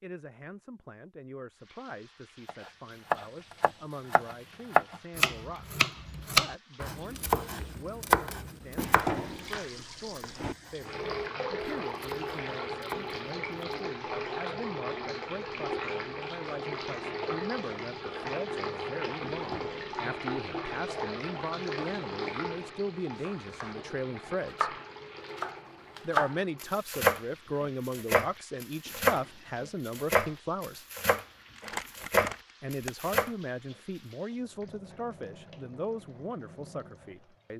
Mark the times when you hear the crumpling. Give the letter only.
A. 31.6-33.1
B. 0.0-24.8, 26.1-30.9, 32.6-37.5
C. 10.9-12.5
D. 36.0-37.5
A.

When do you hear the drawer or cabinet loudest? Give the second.
9 s.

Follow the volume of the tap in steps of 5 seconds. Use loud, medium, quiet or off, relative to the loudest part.
quiet, quiet, loud, loud, loud, quiet, quiet, quiet.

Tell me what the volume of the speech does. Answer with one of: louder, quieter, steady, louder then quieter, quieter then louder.
louder.